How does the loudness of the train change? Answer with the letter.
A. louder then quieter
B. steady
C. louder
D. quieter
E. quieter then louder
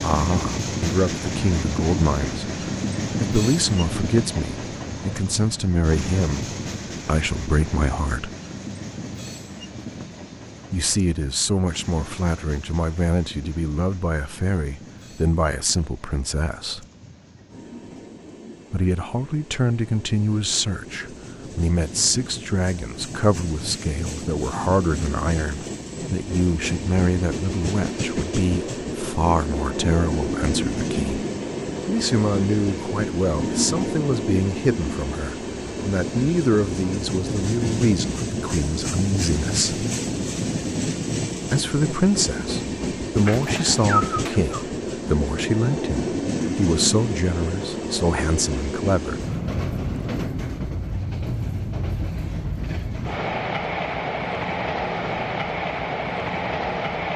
E.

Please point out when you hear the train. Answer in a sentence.
The train can be heard from 0.0 to 57.1 s.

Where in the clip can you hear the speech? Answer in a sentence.
You can hear the speech from 0.0 to 2.5 s, from 3.2 to 8.3 s, from 10.7 to 16.9 s, from 18.7 to 31.2 s, from 31.9 to 39.9 s and from 41.5 to 49.2 s.